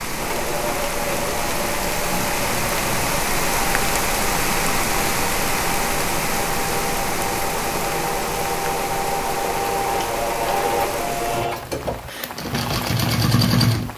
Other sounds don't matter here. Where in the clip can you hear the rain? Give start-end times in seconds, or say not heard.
0.0-13.9.